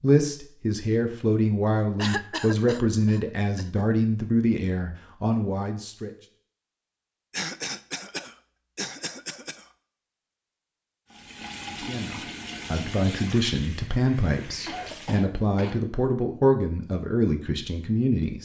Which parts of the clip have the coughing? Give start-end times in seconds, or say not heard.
1.9-3.9, 7.3-9.7, 14.7-15.8.